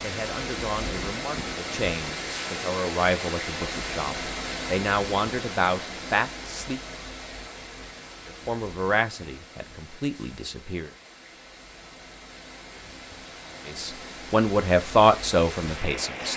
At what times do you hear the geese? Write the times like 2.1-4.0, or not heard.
not heard.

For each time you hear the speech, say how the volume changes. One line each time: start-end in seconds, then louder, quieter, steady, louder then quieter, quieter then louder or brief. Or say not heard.
0.0-6.8 louder
8.2-10.9 brief
13.7-16.3 brief.